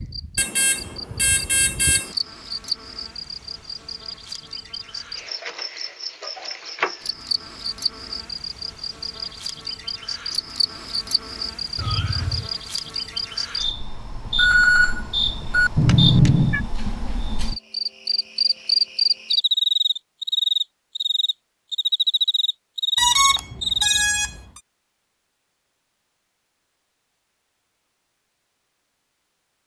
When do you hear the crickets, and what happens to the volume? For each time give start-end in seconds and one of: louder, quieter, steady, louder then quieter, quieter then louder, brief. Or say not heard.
0.0-24.1 louder.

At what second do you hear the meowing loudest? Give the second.
16 s.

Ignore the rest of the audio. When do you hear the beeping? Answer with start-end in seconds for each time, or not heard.
0.3-2.1, 14.2-15.7, 22.9-24.6.